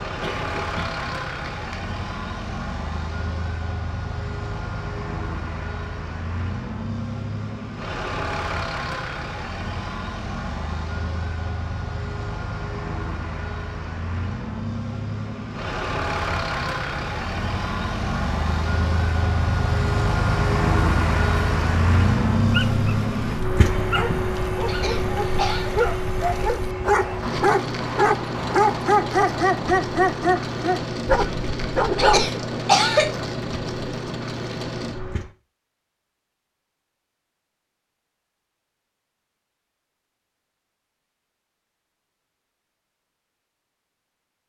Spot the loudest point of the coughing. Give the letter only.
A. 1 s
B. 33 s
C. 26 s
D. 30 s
B.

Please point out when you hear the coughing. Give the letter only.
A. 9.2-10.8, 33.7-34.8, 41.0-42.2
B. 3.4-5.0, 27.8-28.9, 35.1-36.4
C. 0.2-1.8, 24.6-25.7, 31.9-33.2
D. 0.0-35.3
C.